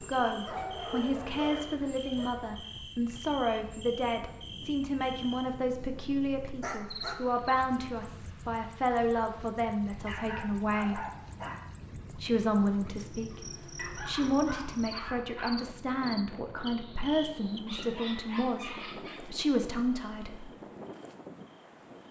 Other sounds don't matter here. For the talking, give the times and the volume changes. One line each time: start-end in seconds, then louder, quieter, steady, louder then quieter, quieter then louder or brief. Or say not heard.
0.0-11.0 steady
12.2-20.5 steady.